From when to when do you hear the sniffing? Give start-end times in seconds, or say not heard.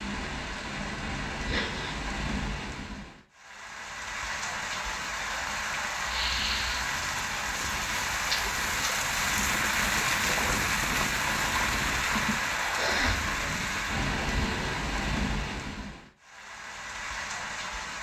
1.4-1.9, 6.0-6.8, 12.1-13.2.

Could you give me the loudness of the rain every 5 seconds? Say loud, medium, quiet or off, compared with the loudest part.
medium, loud, loud, medium.